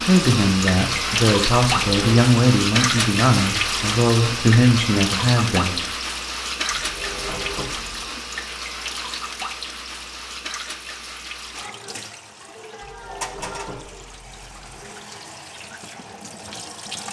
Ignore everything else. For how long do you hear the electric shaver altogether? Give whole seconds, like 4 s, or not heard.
not heard.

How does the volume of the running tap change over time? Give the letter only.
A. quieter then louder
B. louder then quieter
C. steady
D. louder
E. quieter
E.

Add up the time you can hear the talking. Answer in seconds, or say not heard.
6 s.